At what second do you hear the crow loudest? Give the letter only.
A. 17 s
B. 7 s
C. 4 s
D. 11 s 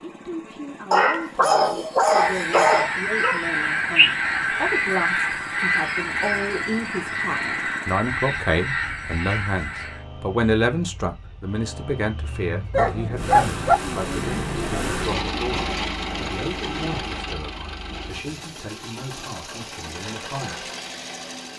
C.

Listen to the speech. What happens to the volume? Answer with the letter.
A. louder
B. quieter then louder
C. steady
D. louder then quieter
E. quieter
D.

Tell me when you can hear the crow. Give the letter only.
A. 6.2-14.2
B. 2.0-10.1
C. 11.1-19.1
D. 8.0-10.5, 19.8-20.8
B.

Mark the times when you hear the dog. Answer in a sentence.
You can hear the dog from 0.9 to 3.5 s and from 12.7 to 13.8 s.